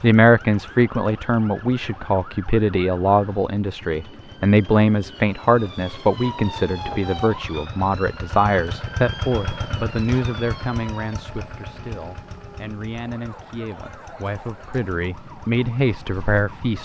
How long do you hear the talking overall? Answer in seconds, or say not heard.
17 s.